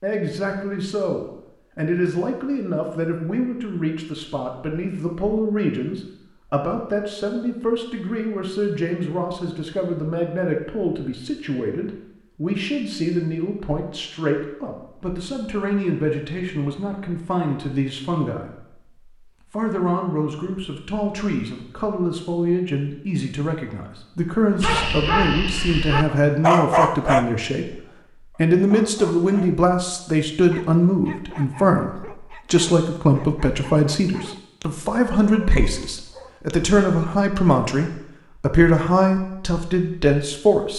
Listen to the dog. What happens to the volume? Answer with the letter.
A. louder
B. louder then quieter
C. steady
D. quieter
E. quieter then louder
D.